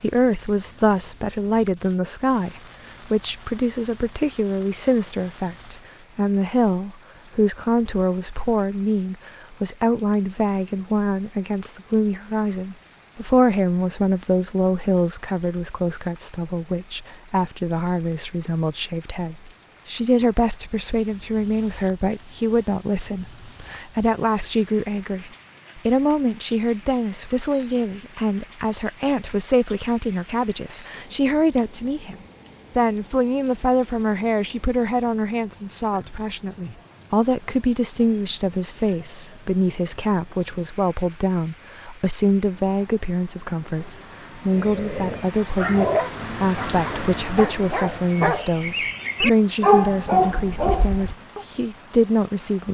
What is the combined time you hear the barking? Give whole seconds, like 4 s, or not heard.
7 s.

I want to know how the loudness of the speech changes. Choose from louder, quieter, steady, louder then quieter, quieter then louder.
steady.